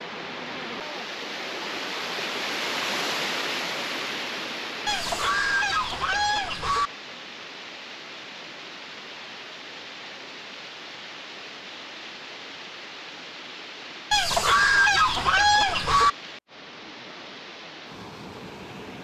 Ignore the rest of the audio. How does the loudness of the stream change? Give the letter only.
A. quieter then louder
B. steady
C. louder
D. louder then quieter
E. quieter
E.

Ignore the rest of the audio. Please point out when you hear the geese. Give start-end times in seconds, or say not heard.
4.8-6.9, 14.1-16.1.